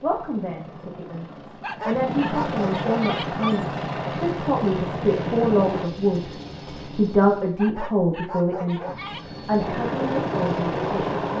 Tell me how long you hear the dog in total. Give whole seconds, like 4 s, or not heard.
4 s.